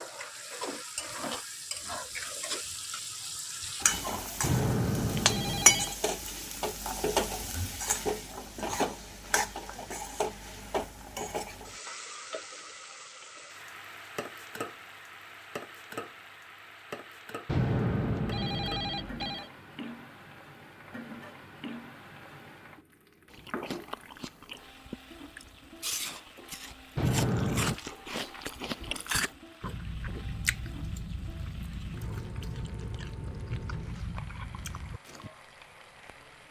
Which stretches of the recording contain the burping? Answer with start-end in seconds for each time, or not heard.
not heard.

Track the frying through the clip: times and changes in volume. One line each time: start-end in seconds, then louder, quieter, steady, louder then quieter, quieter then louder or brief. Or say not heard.
0.0-36.4 quieter.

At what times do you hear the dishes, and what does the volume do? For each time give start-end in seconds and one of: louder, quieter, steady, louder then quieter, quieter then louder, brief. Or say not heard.
not heard.